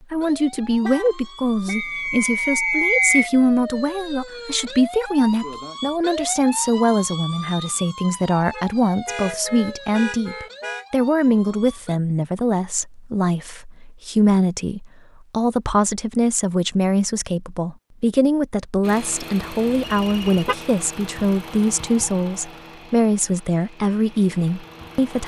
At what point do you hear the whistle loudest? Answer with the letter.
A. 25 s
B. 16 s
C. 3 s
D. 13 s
C.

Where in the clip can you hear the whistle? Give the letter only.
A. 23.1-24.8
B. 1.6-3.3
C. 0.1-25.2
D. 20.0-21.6
B.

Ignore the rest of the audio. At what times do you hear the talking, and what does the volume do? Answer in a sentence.
The talking can be heard from 0.1 to 25.2 s, at a steady volume.